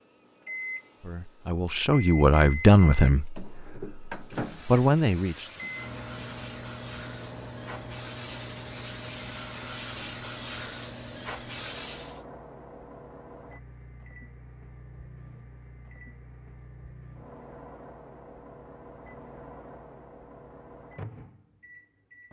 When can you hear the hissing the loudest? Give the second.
10 s.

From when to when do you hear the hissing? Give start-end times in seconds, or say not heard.
4.2-12.2.